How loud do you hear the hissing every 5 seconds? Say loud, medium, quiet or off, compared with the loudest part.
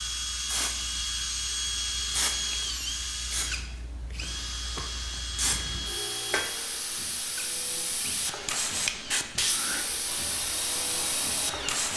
medium, loud, loud.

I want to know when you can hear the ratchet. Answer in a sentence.
The ratchet can't be heard in this clip.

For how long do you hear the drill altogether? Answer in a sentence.
The drill can be heard for 12 seconds in total.